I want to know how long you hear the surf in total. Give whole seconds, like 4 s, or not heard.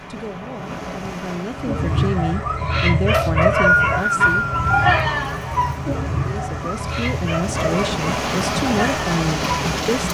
10 s.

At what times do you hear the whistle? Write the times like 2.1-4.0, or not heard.
3.1-4.8.